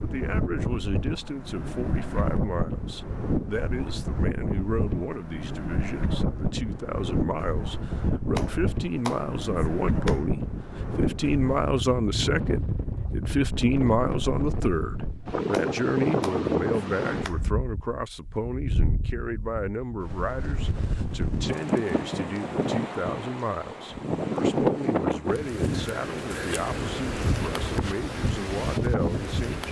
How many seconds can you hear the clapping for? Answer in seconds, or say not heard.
4 s.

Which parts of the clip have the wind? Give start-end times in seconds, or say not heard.
0.0-29.6.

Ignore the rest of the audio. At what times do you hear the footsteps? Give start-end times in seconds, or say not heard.
not heard.